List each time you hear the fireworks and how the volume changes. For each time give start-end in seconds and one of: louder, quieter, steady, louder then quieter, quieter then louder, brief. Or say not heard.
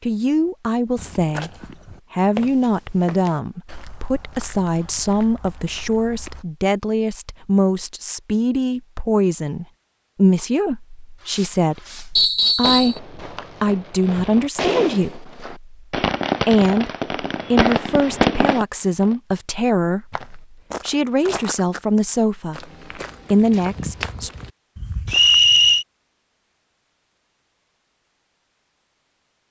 11.2-19.1 louder.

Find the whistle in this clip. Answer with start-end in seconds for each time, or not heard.
12.2-13.0, 25.1-25.9.